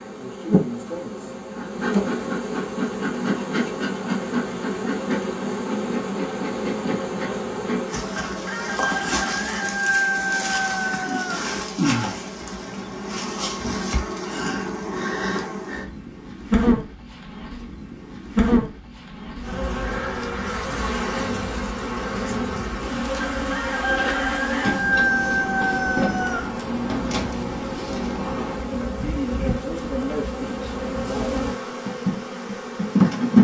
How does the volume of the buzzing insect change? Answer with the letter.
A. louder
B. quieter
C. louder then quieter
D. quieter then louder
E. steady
E.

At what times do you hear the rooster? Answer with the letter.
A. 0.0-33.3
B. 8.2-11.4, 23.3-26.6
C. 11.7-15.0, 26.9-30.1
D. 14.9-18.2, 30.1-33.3
B.